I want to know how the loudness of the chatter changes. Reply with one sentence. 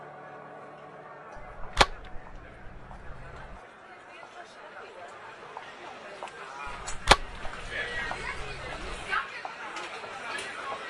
The loudness of the chatter goes up.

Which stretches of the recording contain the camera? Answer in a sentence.
The camera can be heard from 1.4 to 3.6 s and from 6.7 to 9.2 s.